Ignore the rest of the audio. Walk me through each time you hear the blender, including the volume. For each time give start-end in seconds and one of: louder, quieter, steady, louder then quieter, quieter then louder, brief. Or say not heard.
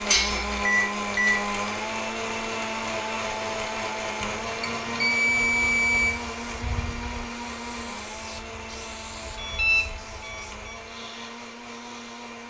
0.0-12.4 quieter.